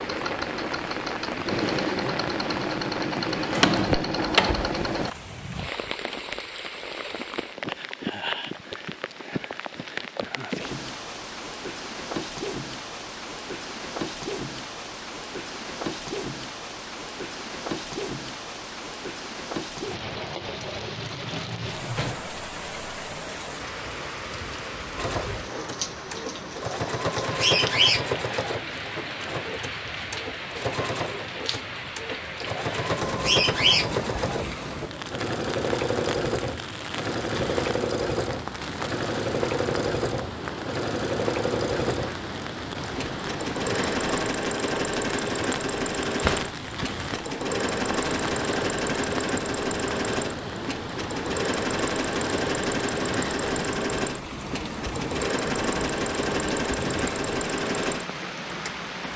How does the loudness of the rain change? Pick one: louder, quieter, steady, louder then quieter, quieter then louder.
steady.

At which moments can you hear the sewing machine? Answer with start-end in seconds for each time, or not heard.
0.0-5.1, 24.9-59.1.